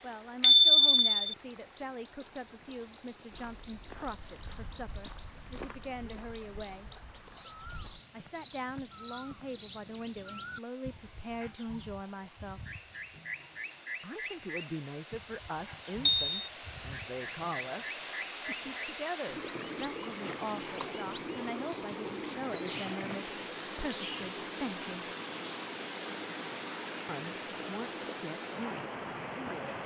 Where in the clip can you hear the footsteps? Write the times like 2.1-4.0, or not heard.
3.3-9.9.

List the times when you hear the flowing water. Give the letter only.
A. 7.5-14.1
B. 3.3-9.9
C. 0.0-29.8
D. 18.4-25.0
C.